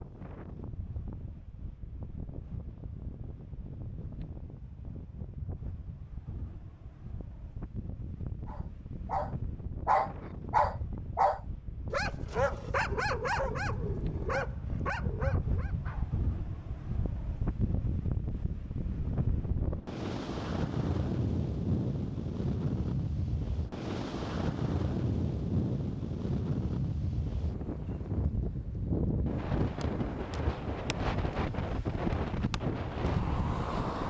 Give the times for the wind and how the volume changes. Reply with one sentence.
You can hear the wind from 0.0 to 34.0 s, getting louder.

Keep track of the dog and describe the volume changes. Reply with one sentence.
The loudness of the dog goes down.